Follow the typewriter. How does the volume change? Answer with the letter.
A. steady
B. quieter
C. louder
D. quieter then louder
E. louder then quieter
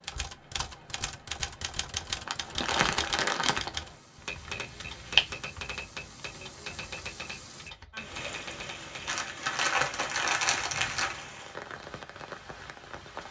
B.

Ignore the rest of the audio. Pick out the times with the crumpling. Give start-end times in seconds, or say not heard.
2.2-3.7, 9.1-11.2.